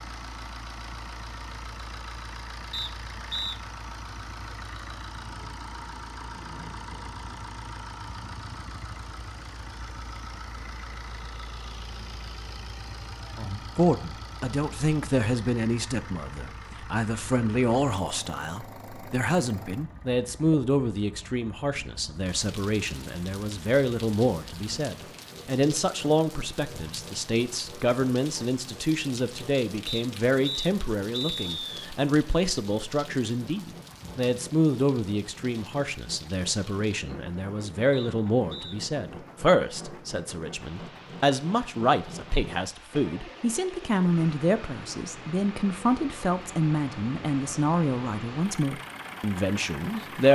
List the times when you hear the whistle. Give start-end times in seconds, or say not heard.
2.7-3.6, 29.9-31.9, 37.9-38.8.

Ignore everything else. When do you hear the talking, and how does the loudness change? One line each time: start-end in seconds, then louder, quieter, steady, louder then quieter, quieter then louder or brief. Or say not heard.
13.3-50.3 steady.